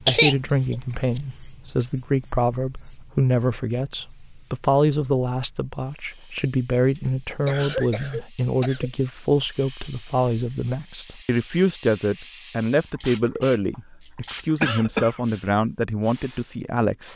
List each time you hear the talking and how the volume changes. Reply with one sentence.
The talking can be heard from 0.1 to 17.1 s, at a steady volume.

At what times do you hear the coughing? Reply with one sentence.
The coughing can be heard from 0.1 to 1.2 s, from 7.0 to 8.9 s and from 14.6 to 15.2 s.